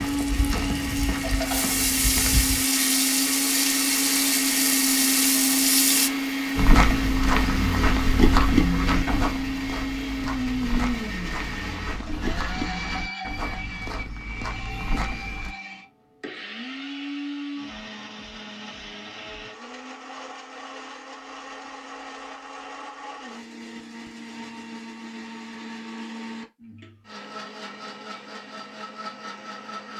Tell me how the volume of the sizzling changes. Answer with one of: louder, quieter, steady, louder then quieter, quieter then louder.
louder.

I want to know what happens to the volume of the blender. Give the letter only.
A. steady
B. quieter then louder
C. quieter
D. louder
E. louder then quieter
C.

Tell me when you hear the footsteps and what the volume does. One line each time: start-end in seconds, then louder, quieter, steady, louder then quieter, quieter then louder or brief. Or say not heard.
0.0-2.6 brief
6.5-15.6 quieter.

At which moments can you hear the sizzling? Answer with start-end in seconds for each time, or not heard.
0.0-6.1.